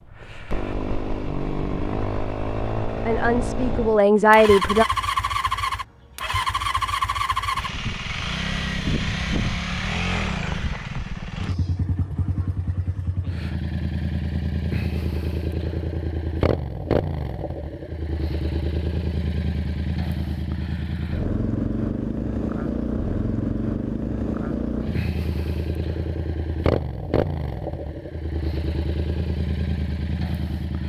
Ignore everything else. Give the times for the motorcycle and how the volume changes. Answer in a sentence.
You can hear the motorcycle from 0.0 to 30.8 s, at a steady volume.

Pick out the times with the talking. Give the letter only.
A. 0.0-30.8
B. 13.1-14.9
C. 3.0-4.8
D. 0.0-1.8
C.